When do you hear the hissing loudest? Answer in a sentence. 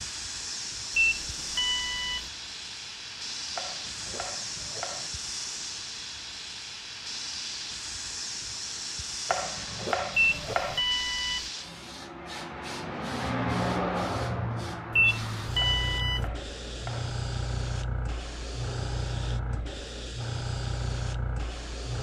The loudest moment of the hissing is at 14 seconds.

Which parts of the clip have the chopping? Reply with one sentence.
You can hear the chopping from 3.5 to 5.1 s, from 9.2 to 10.8 s and from 15.6 to 17.1 s.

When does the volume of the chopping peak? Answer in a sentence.
The volume of the chopping peaks at 10 seconds.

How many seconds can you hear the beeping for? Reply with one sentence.
You can hear the beeping for 4 seconds altogether.